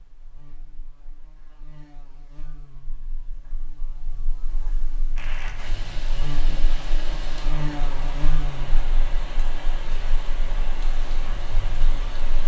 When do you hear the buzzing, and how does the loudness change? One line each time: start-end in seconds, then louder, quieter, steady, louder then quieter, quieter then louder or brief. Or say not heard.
0.0-12.4 louder then quieter.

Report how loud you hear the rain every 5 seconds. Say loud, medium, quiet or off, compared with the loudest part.
off, loud, loud.